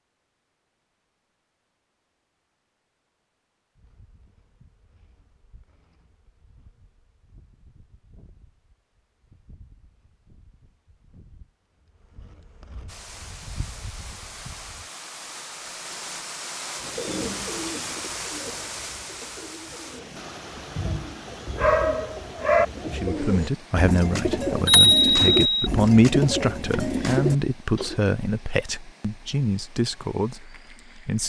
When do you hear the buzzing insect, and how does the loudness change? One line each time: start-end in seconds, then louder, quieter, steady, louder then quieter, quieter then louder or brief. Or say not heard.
3.8-14.9 louder.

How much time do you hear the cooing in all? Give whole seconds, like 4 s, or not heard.
11 s.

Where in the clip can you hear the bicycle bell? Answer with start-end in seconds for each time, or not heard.
24.6-25.7.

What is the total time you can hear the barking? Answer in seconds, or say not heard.
2 s.